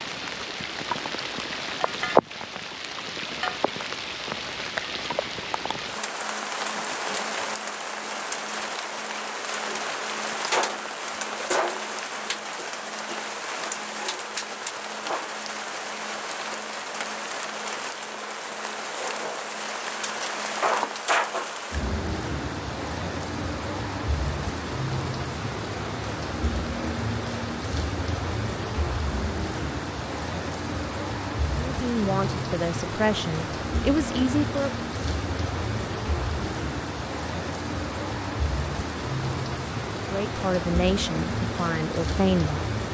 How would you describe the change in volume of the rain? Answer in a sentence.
The volume of the rain stays about the same.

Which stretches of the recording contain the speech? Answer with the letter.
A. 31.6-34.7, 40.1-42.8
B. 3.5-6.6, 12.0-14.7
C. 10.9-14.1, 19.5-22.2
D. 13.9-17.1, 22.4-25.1
A.